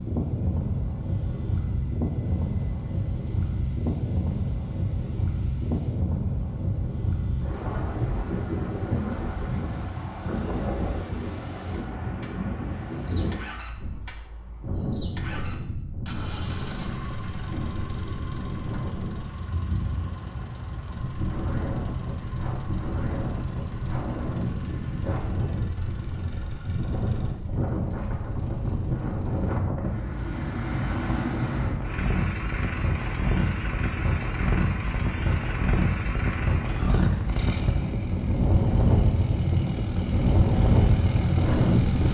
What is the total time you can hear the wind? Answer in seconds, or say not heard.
42 s.